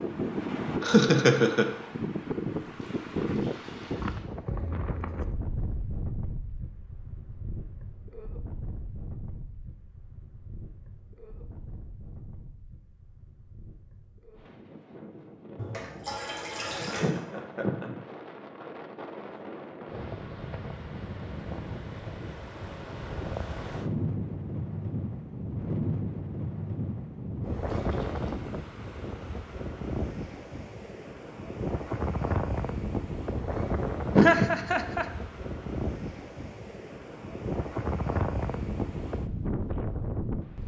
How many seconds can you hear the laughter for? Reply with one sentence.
You can hear the laughter for 3 seconds altogether.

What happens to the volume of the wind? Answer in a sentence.
The loudness of the wind goes down, then up.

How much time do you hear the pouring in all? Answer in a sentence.
The pouring can be heard for 4 seconds in total.